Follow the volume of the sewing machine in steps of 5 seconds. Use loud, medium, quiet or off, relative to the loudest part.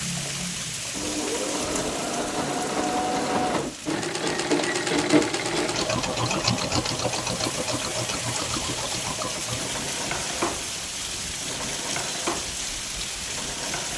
loud, loud, medium.